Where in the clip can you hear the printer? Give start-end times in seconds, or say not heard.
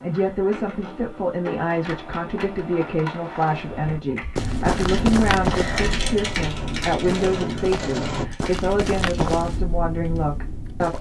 0.0-8.3.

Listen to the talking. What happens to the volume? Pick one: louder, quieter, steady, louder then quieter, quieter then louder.
steady.